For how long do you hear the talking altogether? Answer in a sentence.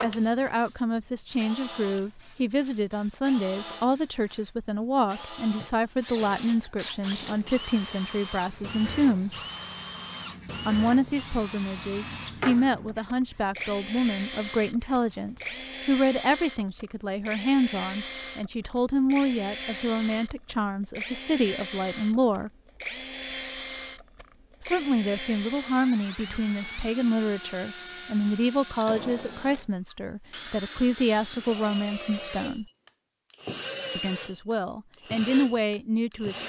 The talking can be heard for 32 seconds in total.